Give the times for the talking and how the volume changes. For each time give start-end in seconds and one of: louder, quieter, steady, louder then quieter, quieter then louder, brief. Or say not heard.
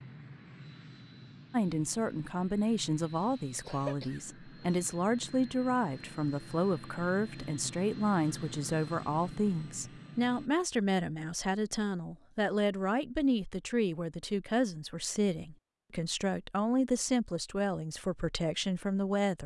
1.5-19.4 steady.